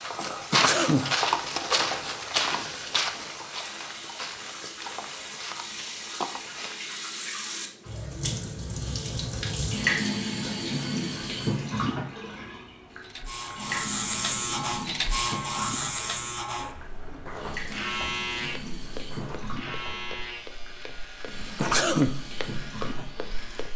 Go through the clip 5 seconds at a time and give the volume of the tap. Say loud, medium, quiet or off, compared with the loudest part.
medium, loud, loud, medium, medium.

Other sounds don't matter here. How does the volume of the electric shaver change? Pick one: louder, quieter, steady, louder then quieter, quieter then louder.
quieter.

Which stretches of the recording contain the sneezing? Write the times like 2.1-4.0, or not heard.
0.5-1.1, 21.6-22.2.